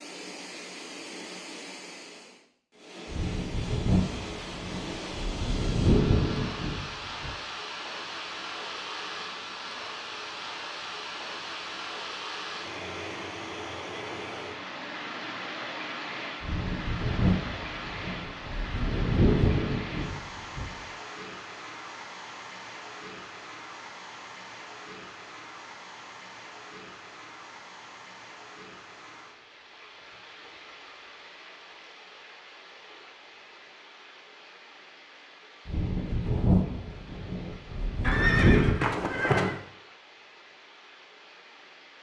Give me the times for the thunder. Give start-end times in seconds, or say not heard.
3.0-7.3, 16.4-20.8, 35.6-38.8.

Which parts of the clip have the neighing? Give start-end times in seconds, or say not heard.
38.0-39.5.